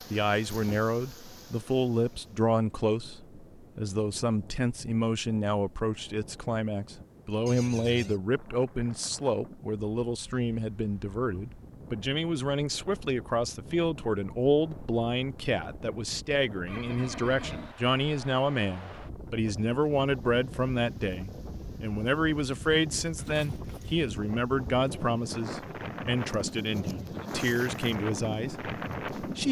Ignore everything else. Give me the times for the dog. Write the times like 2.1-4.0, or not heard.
not heard.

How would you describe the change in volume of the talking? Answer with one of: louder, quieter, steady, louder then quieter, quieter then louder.
steady.